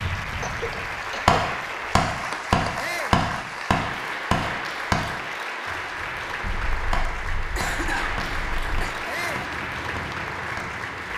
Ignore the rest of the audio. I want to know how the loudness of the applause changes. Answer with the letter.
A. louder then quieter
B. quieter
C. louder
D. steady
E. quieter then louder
D.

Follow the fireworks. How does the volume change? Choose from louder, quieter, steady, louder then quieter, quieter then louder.
quieter.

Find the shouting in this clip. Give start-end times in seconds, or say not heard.
2.8-3.2, 9.1-9.5.